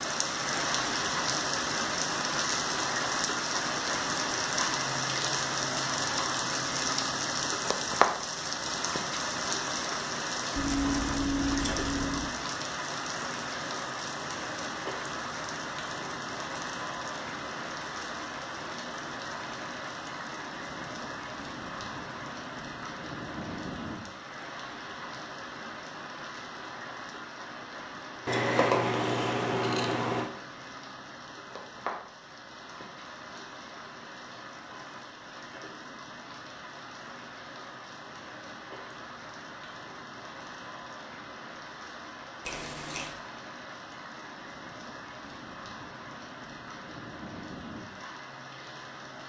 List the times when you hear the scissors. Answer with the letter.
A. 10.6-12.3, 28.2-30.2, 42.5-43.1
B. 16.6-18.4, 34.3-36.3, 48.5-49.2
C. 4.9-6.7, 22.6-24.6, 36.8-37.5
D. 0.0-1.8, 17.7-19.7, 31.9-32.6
A.